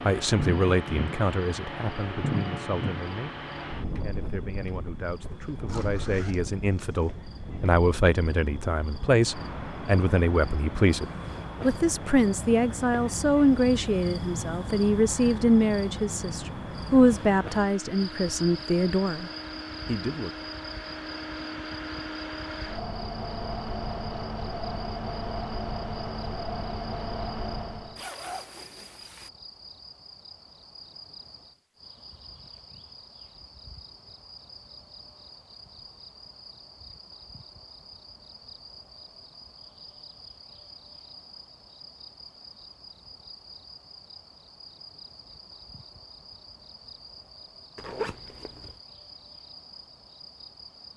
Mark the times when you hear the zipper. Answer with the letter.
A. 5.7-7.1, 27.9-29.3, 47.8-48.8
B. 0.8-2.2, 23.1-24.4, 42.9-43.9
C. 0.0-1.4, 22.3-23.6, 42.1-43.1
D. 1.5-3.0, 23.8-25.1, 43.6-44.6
A.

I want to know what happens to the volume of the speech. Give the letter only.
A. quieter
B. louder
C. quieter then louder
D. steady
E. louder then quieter
B.